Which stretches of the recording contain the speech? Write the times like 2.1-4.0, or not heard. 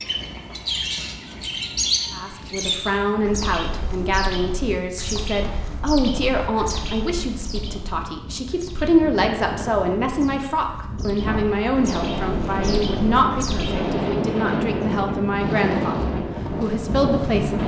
2.1-17.6.